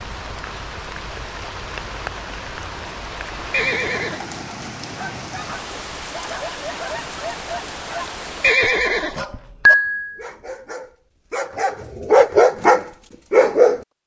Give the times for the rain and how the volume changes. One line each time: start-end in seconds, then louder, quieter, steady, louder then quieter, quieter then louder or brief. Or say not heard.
0.0-8.6 steady.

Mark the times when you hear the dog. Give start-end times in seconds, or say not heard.
5.0-13.8.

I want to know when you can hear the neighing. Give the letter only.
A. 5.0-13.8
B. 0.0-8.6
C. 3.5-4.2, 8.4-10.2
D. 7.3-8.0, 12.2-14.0
C.